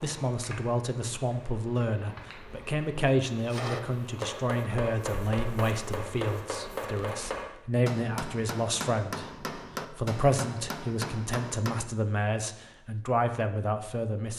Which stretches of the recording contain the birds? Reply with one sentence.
You can't hear the birds here.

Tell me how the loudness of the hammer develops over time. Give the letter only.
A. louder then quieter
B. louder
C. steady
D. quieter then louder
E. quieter
C.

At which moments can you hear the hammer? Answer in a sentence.
The hammer can be heard from 3.5 to 11.8 s.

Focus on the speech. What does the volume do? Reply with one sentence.
The volume of the speech stays about the same.